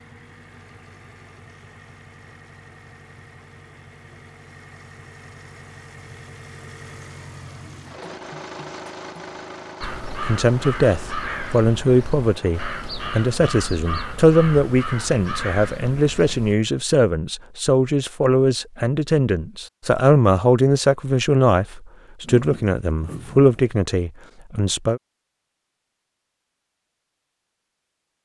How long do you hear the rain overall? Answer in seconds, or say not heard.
not heard.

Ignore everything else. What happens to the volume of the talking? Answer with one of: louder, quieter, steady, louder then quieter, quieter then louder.
steady.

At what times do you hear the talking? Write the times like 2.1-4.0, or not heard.
10.2-25.0.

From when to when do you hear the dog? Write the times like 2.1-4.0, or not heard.
not heard.